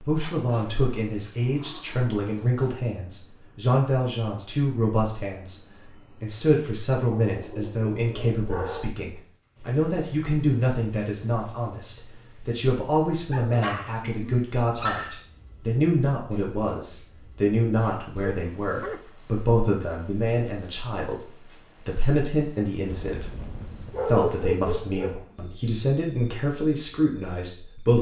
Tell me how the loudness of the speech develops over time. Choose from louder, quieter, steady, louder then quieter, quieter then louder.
steady.